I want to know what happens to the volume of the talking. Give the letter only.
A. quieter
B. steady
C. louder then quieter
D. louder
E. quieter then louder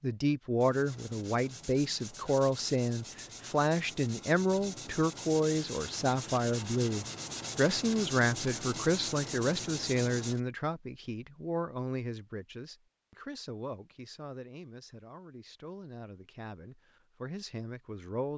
A.